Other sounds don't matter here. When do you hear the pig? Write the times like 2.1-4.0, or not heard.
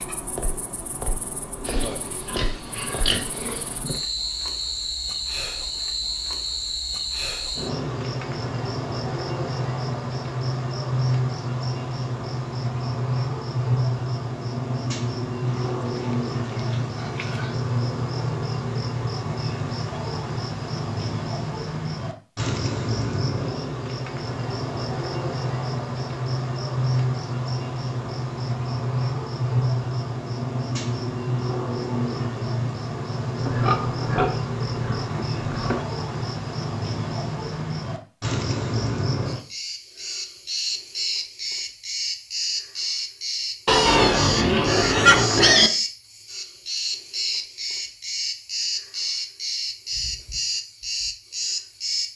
1.6-3.8, 15.4-17.6, 33.4-35.9, 43.6-45.7.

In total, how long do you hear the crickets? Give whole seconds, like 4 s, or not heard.
52 s.